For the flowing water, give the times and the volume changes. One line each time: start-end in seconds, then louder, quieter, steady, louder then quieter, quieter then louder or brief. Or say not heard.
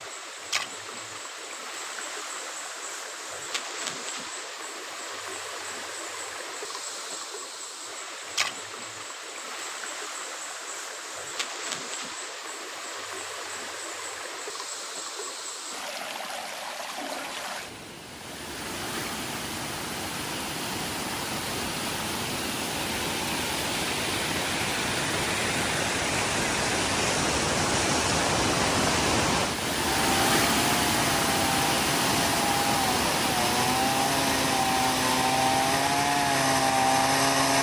0.0-37.5 louder.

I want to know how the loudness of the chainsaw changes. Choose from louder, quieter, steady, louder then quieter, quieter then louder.
louder.